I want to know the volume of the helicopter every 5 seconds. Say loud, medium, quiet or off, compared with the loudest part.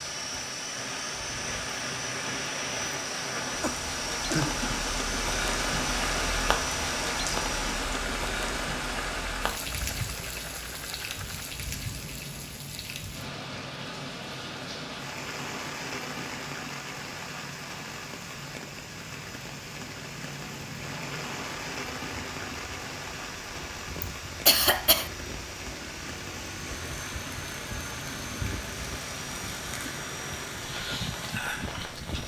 loud, loud, medium, medium, medium, loud, loud.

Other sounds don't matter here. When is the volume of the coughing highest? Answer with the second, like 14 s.
25 s.